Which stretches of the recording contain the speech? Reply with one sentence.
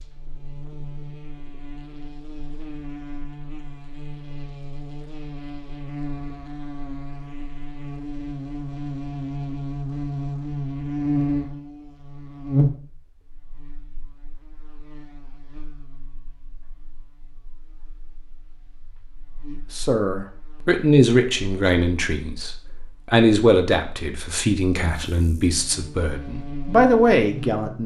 You can hear the speech from 19.5 to 27.8 s.